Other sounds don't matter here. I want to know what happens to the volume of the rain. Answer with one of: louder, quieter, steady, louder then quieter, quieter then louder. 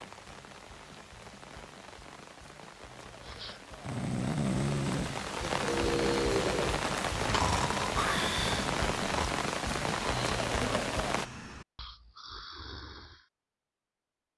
louder.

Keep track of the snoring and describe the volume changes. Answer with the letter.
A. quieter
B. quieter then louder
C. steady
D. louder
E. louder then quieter
A.